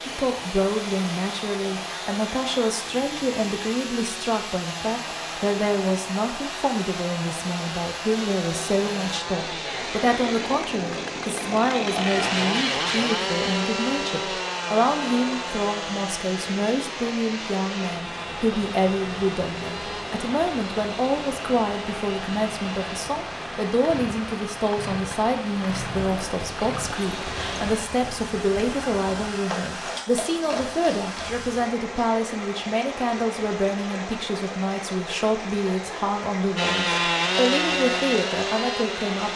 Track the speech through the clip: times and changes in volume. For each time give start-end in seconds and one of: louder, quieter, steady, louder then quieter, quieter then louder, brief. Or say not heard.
0.1-39.3 steady.